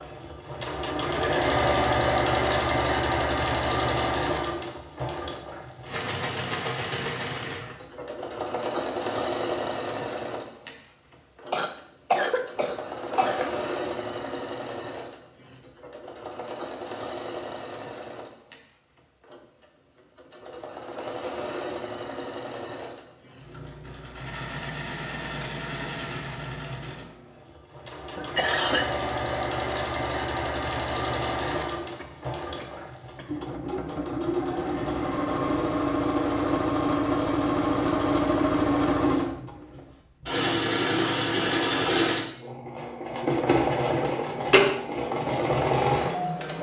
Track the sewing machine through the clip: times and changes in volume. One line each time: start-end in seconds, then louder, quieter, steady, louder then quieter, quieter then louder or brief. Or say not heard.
0.0-46.5 quieter then louder.